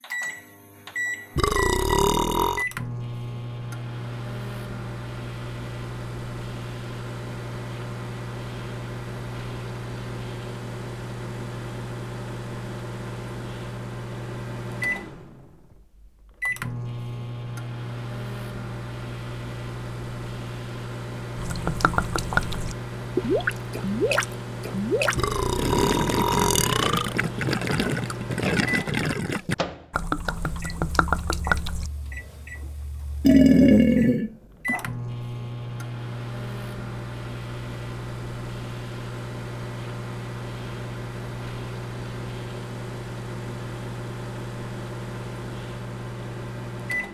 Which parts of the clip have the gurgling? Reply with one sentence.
You can hear the gurgling from 21.4 to 31.9 s.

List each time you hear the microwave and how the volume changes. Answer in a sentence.
The microwave can be heard from 0.0 to 47.0 s, at a steady volume.